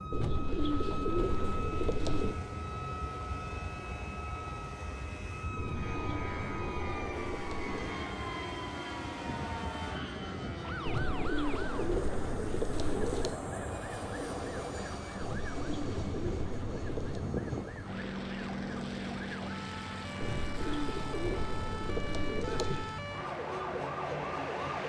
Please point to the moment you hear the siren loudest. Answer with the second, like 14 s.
24 s.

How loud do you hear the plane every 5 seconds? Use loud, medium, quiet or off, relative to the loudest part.
medium, loud, loud, loud, medium.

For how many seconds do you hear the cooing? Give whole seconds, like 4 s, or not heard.
12 s.